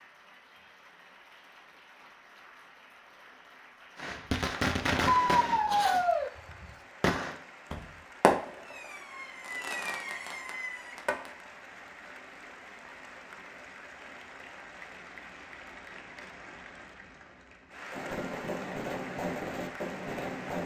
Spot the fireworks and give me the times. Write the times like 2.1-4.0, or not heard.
4.0-11.3, 17.9-20.6.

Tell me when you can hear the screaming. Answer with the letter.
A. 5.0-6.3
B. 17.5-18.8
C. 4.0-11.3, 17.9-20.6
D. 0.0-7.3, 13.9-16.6
A.